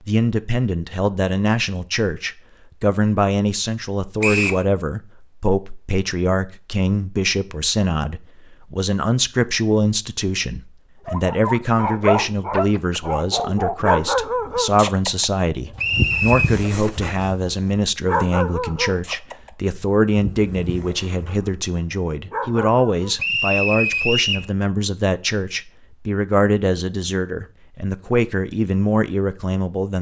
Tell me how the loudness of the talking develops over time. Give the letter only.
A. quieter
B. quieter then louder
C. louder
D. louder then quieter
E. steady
E.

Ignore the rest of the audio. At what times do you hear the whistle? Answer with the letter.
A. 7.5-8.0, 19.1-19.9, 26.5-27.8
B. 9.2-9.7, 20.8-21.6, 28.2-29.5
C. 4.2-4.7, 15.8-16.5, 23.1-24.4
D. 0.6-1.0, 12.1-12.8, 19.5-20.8
C.